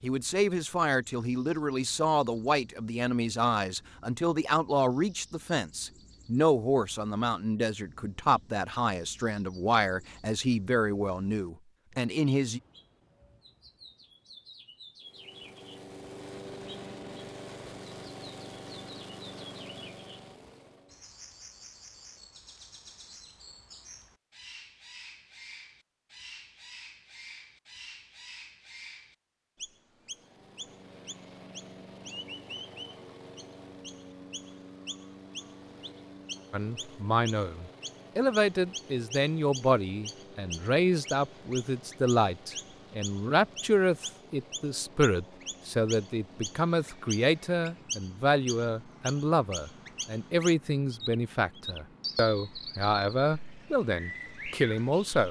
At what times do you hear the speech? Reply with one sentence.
The speech can be heard from 0.0 to 12.6 s and from 36.5 to 55.2 s.